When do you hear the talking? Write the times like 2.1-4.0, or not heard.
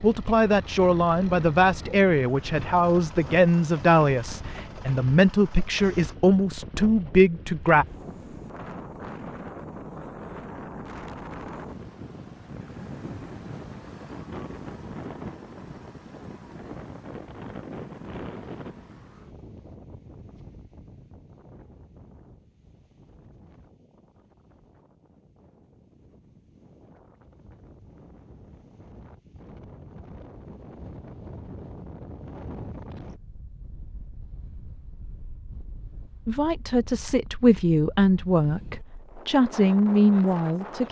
0.0-7.8, 36.2-40.8.